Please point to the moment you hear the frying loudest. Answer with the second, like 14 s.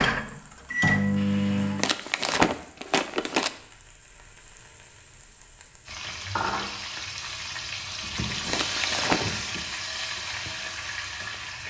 9 s.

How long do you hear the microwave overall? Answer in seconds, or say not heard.
2 s.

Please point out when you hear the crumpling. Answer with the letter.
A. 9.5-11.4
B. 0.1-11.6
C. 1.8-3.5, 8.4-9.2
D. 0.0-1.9
C.